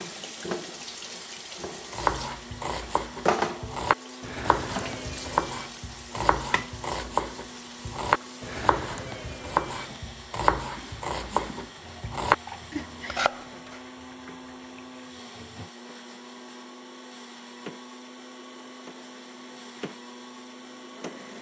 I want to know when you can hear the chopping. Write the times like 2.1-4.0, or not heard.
1.9-13.8.